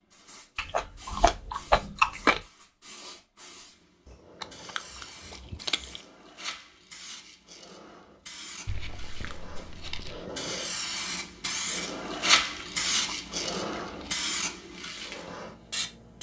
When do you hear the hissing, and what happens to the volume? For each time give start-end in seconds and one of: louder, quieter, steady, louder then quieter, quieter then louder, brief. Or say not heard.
0.1-16.1 louder.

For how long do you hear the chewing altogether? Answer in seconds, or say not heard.
7 s.